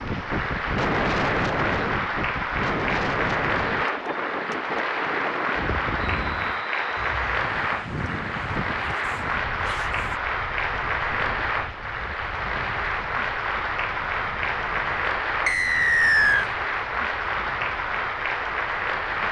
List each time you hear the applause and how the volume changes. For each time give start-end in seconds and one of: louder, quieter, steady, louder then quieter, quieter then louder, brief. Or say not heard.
0.0-19.2 steady.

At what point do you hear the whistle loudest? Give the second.
16 s.